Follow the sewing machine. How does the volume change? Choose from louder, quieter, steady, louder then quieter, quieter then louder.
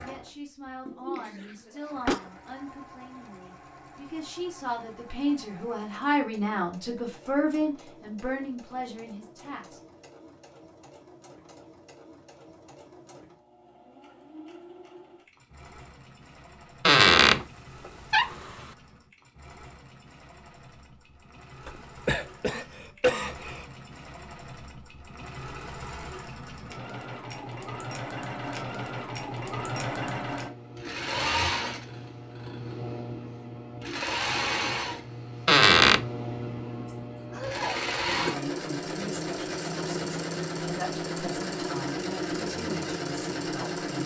louder.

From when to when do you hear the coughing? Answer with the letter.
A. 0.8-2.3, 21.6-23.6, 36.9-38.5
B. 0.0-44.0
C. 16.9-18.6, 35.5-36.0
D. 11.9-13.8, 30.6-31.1
A.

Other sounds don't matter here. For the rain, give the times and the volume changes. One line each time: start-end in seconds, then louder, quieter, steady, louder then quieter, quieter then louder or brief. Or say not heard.
not heard.